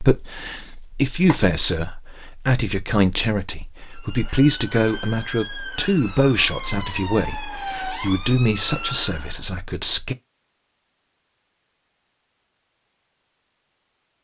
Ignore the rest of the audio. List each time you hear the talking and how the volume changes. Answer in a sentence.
You can hear the talking from 0.0 to 10.2 s, at a steady volume.